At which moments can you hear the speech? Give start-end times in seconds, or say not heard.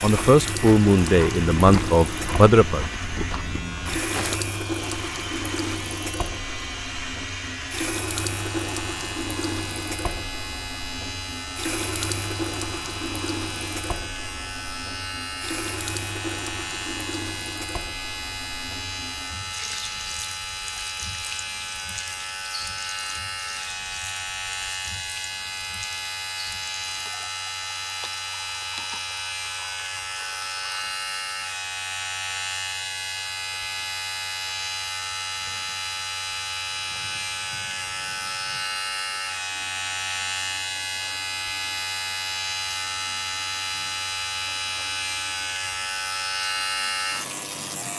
0.0-2.9.